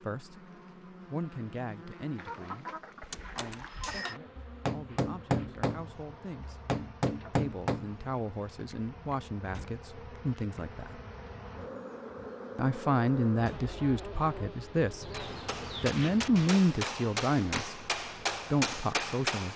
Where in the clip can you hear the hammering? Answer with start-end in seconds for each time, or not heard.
3.8-8.0, 15.1-19.5.